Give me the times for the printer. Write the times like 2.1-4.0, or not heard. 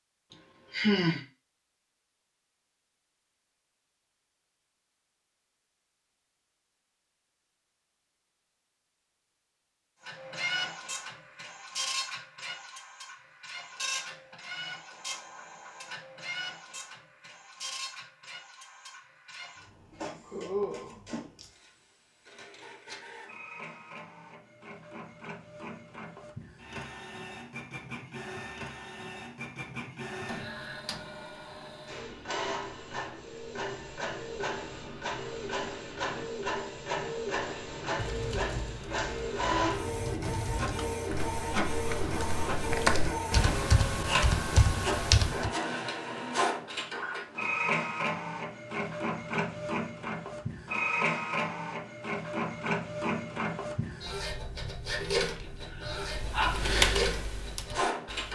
10.0-58.3.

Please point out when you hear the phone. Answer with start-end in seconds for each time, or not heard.
not heard.